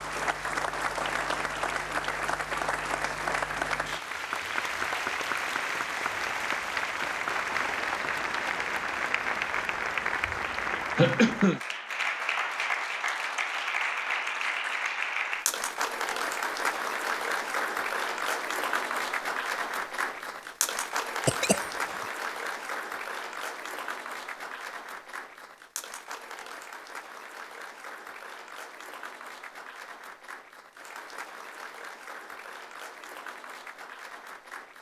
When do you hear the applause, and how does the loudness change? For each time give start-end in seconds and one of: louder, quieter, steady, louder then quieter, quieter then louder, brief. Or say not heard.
0.0-34.7 quieter.